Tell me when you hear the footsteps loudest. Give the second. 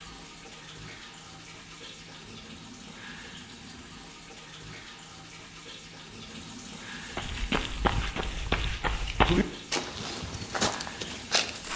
9 s.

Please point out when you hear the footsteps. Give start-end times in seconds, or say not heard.
7.2-11.7.